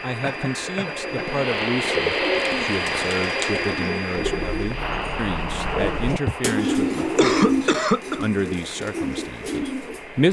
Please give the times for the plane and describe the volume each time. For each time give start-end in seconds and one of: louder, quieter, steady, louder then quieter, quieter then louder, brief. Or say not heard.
0.0-10.2 quieter.